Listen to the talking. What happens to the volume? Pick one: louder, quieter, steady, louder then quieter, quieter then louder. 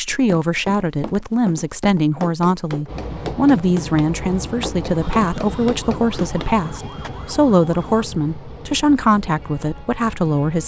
steady.